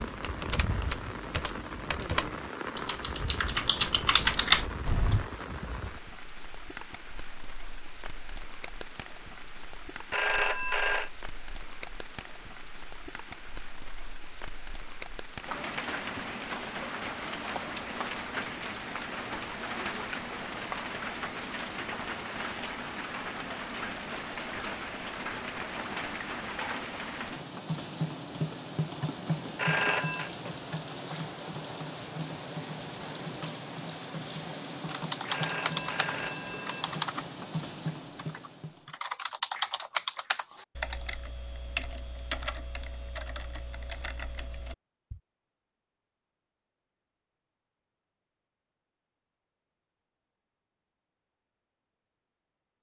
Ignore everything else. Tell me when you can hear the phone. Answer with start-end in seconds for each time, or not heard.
10.1-11.1, 29.6-30.3, 35.2-36.9.